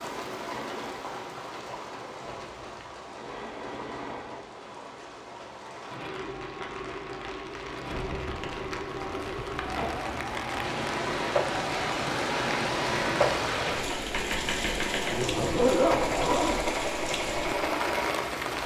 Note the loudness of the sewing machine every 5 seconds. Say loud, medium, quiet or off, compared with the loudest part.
medium, medium, loud, loud.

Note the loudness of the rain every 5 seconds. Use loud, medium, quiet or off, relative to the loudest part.
medium, medium, loud, loud.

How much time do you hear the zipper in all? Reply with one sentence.
You can hear the zipper for 4 seconds altogether.